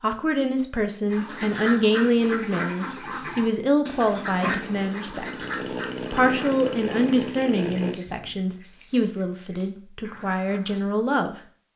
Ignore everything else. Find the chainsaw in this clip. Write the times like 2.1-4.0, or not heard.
4.4-8.0.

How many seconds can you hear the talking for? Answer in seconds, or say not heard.
11 s.